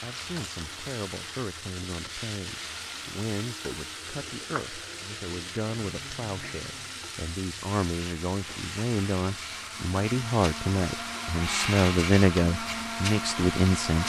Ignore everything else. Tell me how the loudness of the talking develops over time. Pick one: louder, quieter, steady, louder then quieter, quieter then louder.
louder.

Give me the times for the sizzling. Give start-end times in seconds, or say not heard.
0.0-14.0.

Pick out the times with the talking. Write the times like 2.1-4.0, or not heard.
0.0-14.0.